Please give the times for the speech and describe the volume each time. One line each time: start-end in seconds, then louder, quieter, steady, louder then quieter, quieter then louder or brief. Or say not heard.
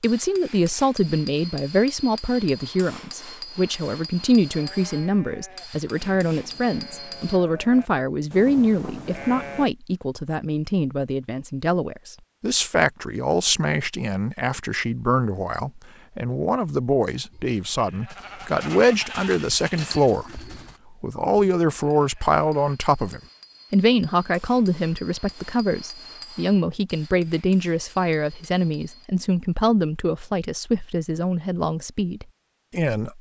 0.0-33.1 steady.